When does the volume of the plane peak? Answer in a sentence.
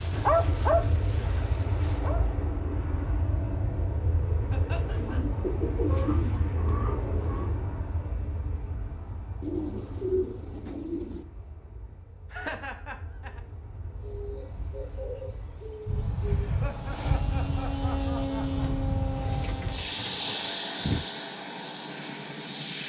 The loudest moment of the plane is at 20 seconds.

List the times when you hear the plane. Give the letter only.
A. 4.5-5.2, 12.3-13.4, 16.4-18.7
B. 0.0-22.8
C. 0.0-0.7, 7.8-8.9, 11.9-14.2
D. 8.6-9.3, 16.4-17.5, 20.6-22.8
B.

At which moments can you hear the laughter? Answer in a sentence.
You can hear the laughter from 4.5 to 5.2 s, from 12.3 to 13.4 s and from 16.4 to 18.7 s.